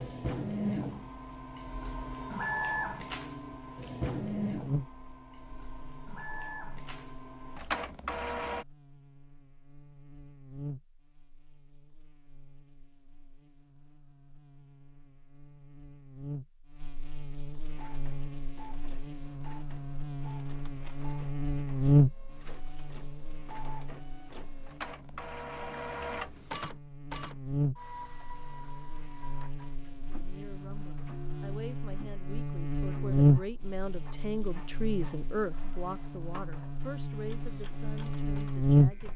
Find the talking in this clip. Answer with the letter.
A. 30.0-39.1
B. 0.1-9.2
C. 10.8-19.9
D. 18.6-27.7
A.